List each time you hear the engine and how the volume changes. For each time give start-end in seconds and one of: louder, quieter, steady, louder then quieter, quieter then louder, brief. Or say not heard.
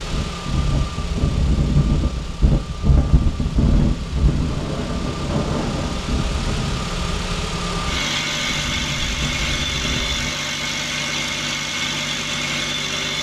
0.0-13.1 louder.